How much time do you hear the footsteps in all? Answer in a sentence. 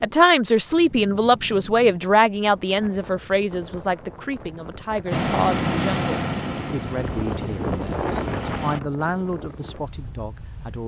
You can't hear the footsteps here.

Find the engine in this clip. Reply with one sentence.
The engine can be heard from 5.1 to 8.8 s.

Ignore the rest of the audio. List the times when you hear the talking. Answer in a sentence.
You can hear the talking from 0.0 to 10.8 s.